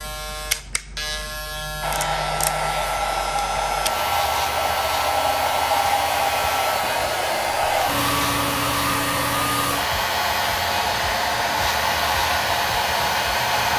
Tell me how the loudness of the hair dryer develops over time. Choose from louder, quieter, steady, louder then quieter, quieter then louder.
steady.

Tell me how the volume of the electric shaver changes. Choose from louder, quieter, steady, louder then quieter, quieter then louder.
steady.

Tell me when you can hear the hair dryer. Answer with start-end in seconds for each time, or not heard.
1.8-13.7.